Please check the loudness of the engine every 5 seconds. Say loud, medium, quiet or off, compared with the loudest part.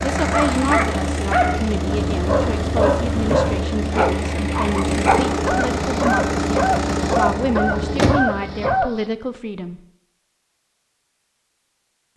loud, loud, off.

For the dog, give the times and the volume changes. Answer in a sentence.
You can hear the dog from 0.1 to 9.1 s, at a steady volume.